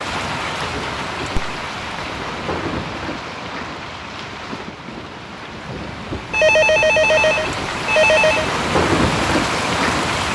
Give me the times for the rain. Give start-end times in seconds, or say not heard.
0.0-10.3.